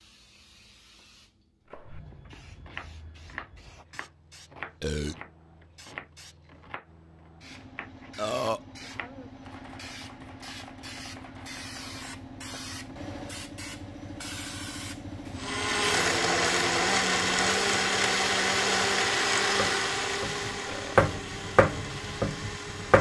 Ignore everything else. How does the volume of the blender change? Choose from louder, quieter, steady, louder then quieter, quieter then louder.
quieter.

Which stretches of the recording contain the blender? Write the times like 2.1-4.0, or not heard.
15.3-22.9.